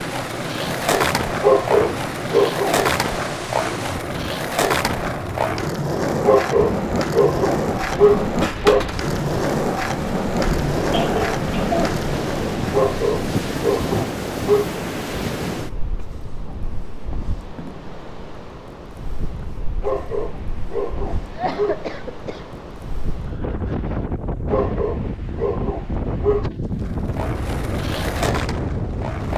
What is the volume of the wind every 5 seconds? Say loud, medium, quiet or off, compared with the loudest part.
medium, medium, loud, medium, medium, loud.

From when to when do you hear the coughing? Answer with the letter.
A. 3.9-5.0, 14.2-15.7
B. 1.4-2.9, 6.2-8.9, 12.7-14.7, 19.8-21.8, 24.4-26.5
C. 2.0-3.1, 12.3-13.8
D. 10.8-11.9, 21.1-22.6
D.